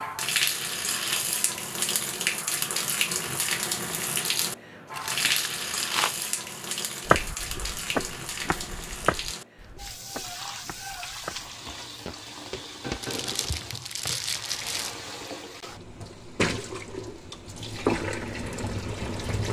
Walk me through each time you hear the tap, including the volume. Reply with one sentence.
The tap can be heard from 0.0 to 19.4 s, getting quieter then louder.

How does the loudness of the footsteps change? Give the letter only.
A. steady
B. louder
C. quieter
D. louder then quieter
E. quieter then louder
E.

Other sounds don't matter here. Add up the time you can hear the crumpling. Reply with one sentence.
You can hear the crumpling for 3 seconds altogether.